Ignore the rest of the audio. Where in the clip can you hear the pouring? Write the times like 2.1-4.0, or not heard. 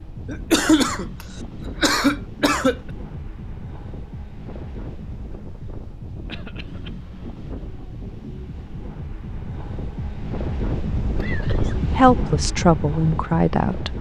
not heard.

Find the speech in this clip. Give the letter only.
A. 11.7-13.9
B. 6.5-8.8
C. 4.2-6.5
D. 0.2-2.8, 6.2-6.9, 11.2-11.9
A.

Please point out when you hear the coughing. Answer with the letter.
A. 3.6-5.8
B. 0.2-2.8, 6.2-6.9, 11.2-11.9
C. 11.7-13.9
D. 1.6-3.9
B.